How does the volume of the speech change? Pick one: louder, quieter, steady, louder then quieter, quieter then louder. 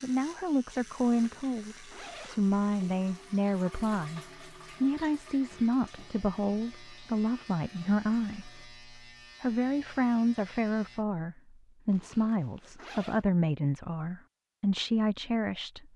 steady.